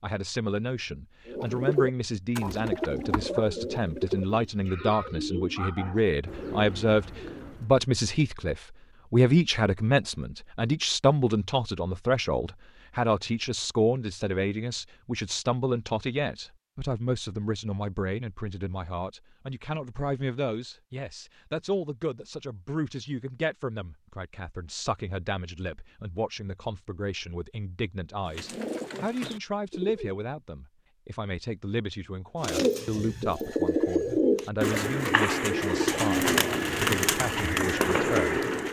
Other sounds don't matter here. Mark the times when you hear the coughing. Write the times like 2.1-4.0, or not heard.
not heard.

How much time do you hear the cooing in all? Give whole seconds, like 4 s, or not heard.
15 s.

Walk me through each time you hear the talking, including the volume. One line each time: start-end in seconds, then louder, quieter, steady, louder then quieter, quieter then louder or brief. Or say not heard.
0.0-38.4 quieter.